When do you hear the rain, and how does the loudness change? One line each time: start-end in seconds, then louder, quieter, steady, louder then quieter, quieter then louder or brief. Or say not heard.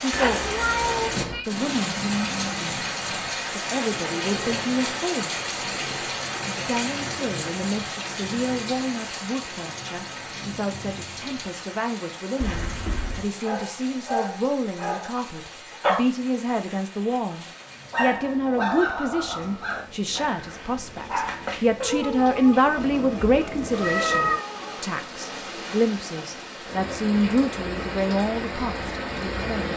0.0-29.7 quieter then louder.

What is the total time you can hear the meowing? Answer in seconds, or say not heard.
4 s.